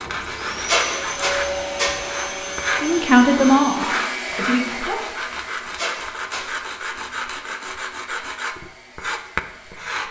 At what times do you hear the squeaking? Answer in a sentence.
The squeaking can be heard from 0.7 to 1.9 s and from 5.8 to 6.5 s.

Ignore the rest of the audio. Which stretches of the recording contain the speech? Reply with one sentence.
The speech can be heard from 2.8 to 5.0 s.